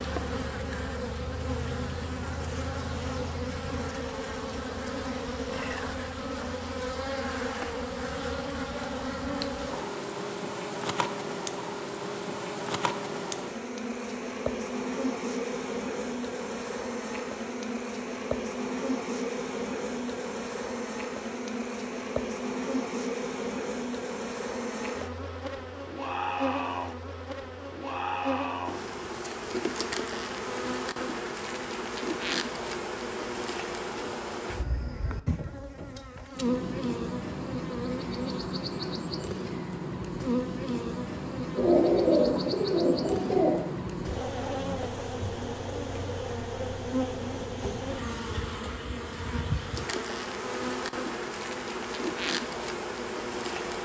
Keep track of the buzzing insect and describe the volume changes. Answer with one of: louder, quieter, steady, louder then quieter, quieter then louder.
steady.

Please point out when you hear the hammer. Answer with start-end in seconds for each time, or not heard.
not heard.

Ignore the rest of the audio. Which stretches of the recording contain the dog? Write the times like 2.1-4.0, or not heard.
not heard.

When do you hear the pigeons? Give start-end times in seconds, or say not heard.
41.5-43.6.